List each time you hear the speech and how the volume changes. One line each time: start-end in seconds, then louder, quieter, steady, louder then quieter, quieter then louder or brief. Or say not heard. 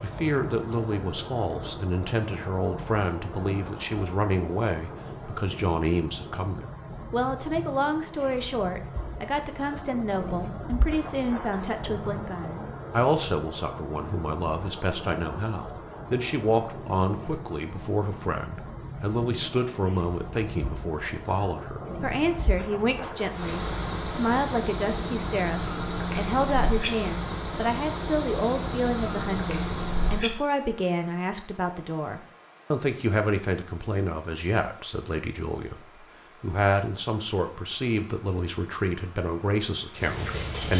0.0-40.7 steady.